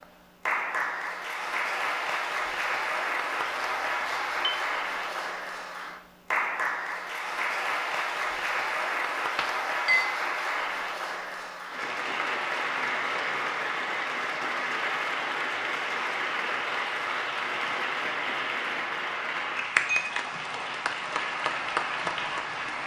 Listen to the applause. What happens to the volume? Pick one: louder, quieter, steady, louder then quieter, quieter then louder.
steady.